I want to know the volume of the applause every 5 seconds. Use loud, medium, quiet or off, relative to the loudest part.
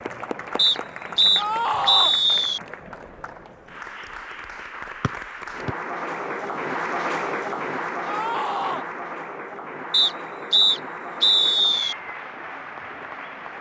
medium, loud, medium.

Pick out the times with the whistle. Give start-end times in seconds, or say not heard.
0.6-2.6, 5.0-5.7, 9.9-11.9.